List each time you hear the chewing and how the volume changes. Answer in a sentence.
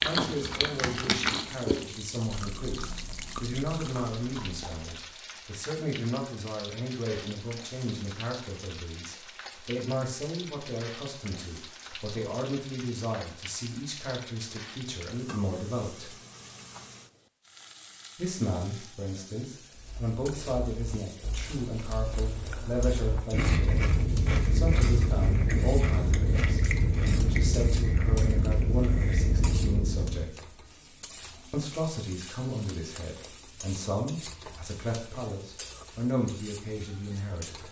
You can hear the chewing from 0.0 to 5.1 s, getting quieter; and from 19.8 to 30.3 s, getting louder.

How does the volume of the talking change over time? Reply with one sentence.
The volume of the talking stays about the same.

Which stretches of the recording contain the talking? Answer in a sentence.
You can hear the talking from 0.0 to 16.1 s, from 18.1 to 23.9 s, from 24.5 to 30.4 s and from 31.5 to 37.6 s.